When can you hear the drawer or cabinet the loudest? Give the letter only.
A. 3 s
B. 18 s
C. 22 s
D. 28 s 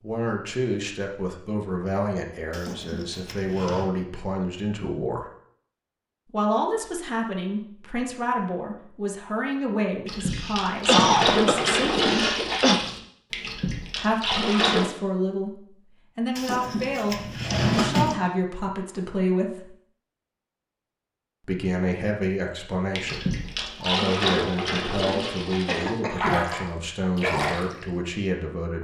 B.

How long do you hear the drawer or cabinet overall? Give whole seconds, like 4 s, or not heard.
3 s.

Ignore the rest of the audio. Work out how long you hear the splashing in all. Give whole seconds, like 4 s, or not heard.
10 s.